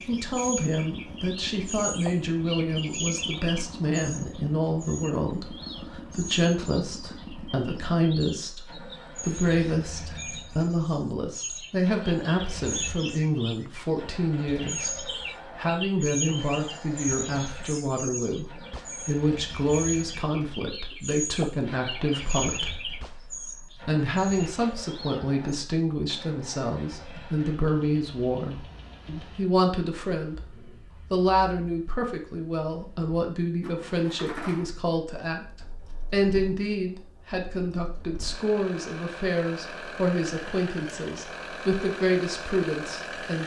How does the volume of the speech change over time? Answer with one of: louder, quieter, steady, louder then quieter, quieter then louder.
steady.